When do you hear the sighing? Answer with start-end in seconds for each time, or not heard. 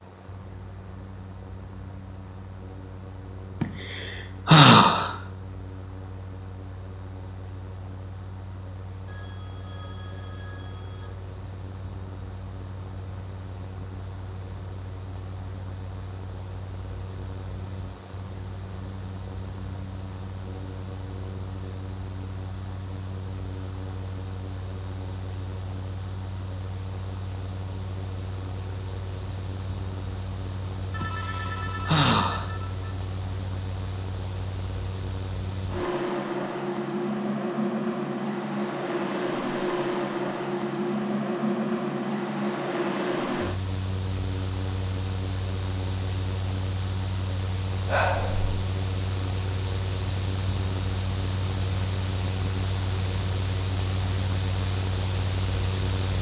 3.6-5.2, 31.0-32.5, 47.9-48.5.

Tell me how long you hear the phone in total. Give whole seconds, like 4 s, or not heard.
4 s.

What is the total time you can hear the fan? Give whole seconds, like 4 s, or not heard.
56 s.